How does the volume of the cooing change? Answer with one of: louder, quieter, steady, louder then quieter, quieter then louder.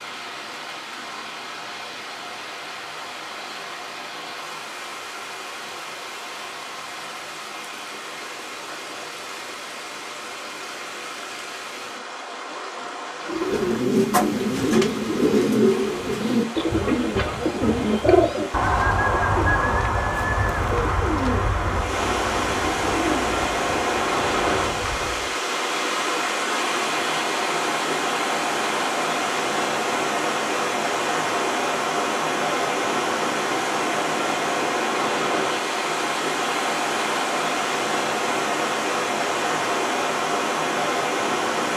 quieter.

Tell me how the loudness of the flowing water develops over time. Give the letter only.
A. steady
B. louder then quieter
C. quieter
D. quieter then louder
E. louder
E.